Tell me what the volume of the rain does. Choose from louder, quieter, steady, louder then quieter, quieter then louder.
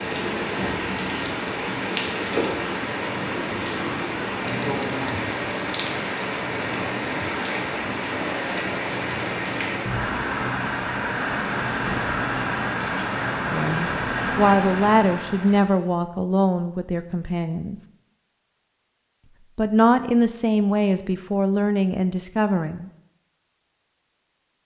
steady.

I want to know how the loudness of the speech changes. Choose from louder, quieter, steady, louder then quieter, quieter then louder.
steady.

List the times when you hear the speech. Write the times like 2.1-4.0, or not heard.
13.5-17.8, 19.6-22.9.